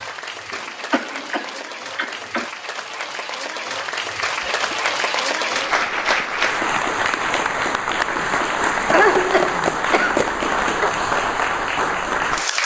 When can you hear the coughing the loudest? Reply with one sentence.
The volume of the coughing peaks at 9 seconds.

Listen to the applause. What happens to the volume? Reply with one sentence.
The volume of the applause goes up.